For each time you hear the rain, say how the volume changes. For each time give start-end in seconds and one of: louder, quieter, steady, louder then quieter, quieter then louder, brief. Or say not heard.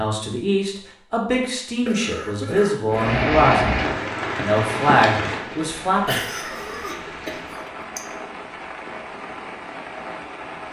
2.9-10.6 quieter.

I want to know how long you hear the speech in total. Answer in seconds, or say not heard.
6 s.